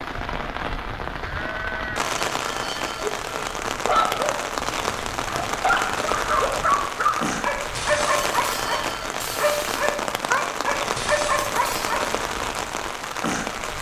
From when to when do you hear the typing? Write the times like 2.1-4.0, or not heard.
not heard.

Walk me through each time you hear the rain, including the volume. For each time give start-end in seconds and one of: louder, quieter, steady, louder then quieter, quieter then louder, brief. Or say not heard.
0.0-13.7 steady.